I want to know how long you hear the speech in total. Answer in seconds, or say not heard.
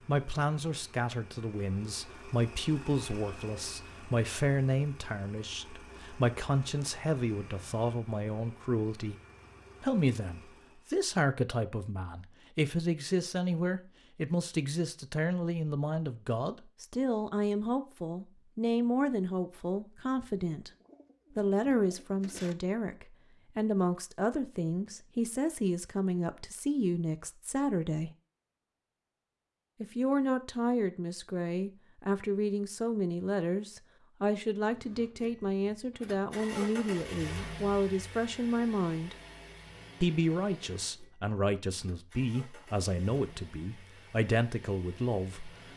42 s.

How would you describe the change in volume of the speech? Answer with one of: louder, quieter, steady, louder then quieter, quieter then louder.
steady.